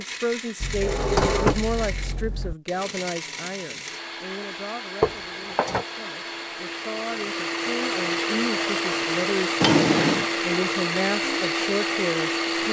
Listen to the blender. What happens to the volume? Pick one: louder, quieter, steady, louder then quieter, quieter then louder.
louder.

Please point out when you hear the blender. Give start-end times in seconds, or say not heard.
0.0-12.6.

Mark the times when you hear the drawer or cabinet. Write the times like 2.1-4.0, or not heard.
0.6-2.5, 5.0-5.8, 9.6-10.2.